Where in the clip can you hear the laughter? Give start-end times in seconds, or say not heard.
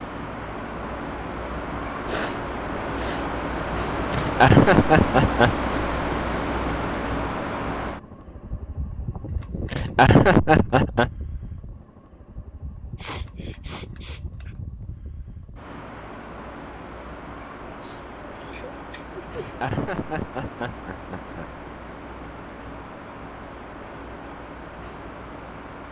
4.1-5.5, 9.7-11.1, 19.3-21.5.